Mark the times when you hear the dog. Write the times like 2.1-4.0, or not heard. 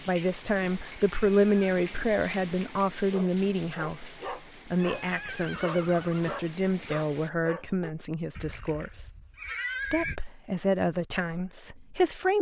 3.1-7.9.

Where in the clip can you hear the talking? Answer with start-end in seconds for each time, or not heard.
0.1-9.1, 9.8-12.3.